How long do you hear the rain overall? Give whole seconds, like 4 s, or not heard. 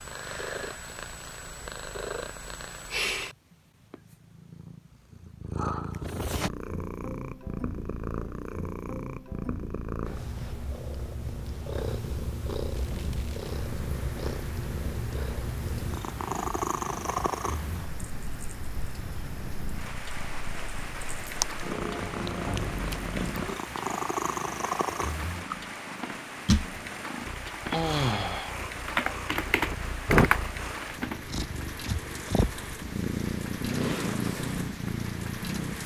23 s.